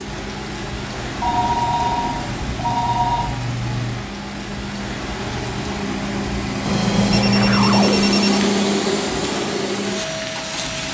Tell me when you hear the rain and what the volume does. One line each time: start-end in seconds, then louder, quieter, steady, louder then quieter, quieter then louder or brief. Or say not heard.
0.0-10.8 steady.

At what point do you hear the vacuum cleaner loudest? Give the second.
8 s.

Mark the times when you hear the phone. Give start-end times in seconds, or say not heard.
1.2-3.3, 6.7-8.4.